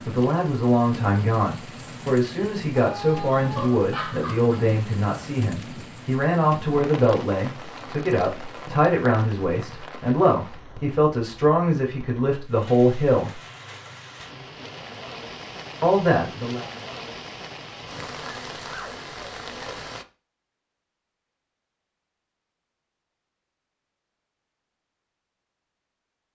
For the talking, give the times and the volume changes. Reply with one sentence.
The talking can be heard from 0.0 to 13.4 s, at a steady volume; and briefly from 15.8 to 16.6 s.